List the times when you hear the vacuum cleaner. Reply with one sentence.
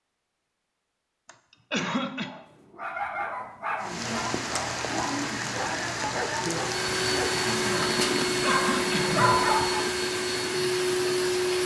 The vacuum cleaner can be heard from 6.6 to 11.6 s.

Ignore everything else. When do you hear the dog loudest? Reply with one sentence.
The loudest moment of the dog is at 9 seconds.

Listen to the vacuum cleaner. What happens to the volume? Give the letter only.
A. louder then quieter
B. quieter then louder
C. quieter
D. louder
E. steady
E.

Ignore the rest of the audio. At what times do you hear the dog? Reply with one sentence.
The dog can be heard from 2.1 to 9.8 s.